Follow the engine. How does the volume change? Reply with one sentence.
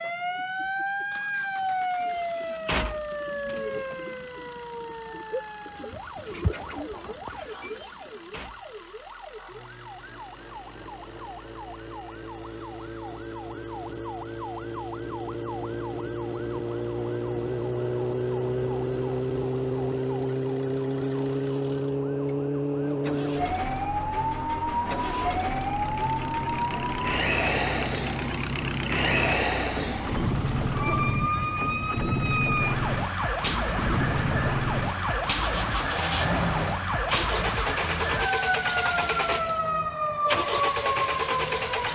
The loudness of the engine goes up.